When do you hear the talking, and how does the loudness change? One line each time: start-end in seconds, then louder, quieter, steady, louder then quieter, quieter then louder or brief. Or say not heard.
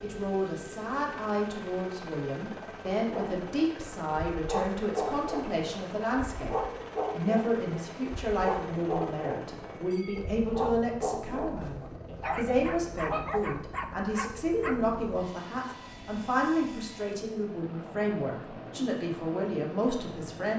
0.0-20.5 steady.